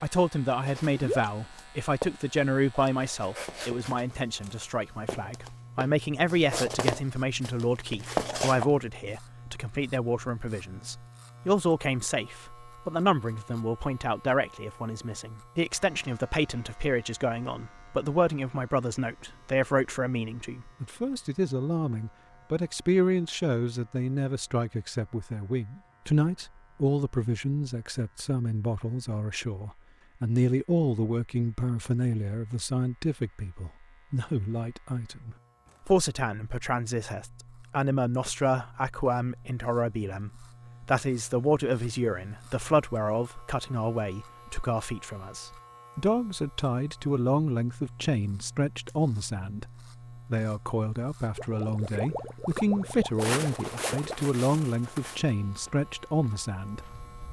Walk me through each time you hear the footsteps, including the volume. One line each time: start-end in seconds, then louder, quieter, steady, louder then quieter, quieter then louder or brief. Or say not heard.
0.7-8.8 quieter then louder
53.1-57.2 quieter.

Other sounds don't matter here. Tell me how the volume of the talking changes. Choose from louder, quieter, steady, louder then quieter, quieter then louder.
steady.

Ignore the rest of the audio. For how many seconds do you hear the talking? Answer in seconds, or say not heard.
56 s.